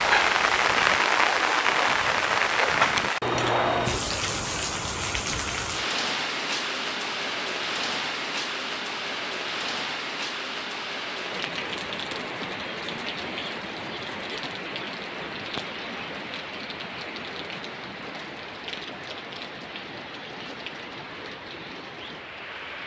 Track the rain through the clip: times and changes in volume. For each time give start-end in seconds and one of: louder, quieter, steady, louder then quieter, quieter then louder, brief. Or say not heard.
0.0-22.8 quieter.